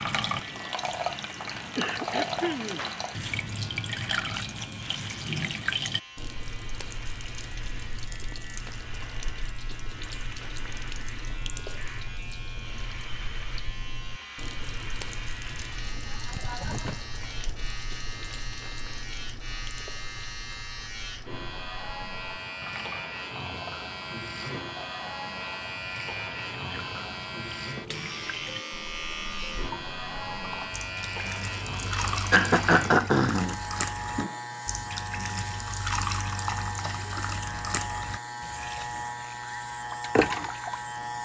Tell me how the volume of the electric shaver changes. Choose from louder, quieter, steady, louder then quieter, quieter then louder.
louder.